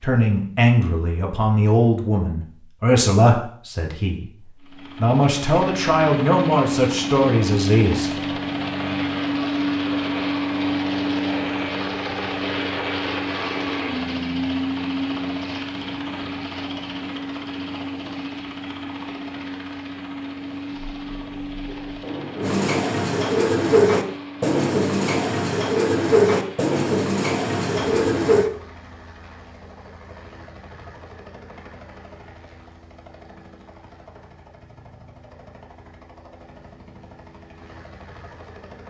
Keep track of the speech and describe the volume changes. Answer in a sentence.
The volume of the speech goes down, then up.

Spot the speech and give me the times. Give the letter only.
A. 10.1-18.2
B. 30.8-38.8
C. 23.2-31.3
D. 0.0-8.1
D.